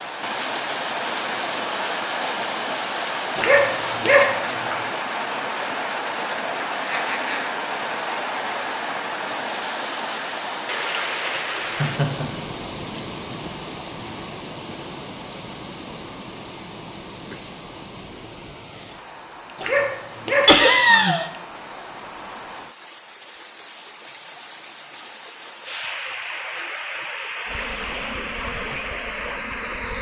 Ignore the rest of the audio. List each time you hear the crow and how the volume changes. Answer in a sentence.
You can't hear the crow here.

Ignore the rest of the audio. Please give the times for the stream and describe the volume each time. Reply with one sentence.
You can hear the stream from 0.0 to 29.9 s, getting quieter then louder.